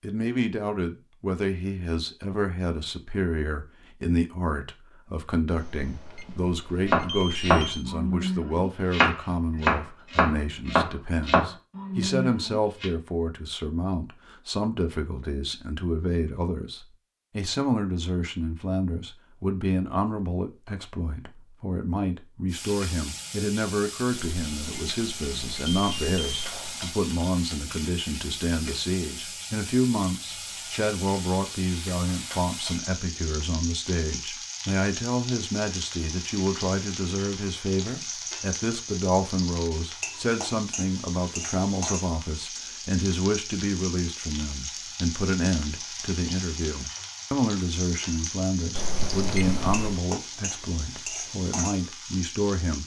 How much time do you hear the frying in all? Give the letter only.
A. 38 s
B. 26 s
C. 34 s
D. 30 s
D.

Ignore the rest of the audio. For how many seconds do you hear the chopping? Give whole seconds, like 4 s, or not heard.
6 s.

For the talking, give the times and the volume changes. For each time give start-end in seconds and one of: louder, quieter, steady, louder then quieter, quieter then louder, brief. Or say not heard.
0.0-52.8 steady.